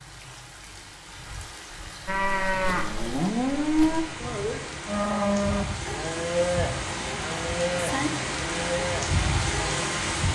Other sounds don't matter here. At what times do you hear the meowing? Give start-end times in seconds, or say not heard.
not heard.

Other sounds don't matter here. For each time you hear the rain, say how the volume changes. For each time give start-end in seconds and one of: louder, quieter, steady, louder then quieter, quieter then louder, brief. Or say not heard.
0.0-10.3 louder.